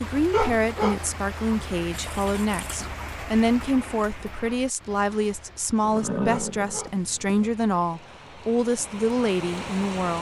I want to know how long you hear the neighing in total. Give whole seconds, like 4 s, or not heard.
3 s.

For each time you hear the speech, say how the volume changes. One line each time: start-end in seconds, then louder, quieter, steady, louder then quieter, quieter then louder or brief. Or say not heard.
0.0-10.1 steady.